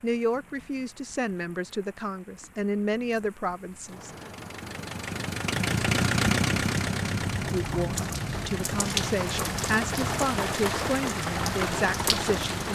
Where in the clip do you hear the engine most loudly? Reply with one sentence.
The volume of the engine peaks at 6 seconds.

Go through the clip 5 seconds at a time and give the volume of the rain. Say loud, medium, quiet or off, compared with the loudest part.
quiet, loud, loud.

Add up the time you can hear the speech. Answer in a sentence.
The speech can be heard for 9 seconds in total.